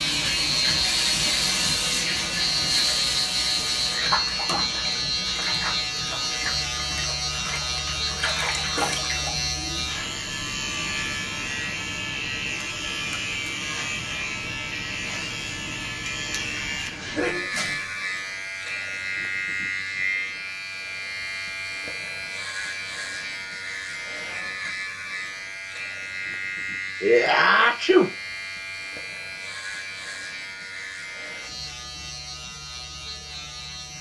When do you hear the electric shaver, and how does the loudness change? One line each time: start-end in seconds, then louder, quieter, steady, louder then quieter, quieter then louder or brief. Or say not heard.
0.0-33.9 quieter.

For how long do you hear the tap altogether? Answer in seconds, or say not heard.
9 s.